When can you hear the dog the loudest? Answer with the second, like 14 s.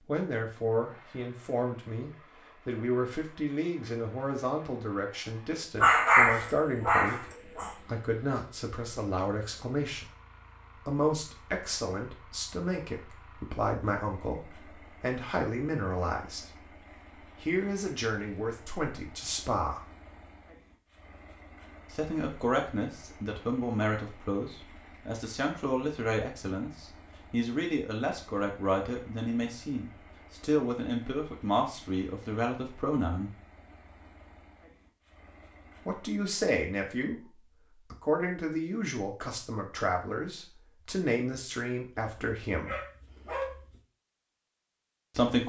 6 s.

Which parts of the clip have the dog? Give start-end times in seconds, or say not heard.
5.8-7.7, 42.0-43.8.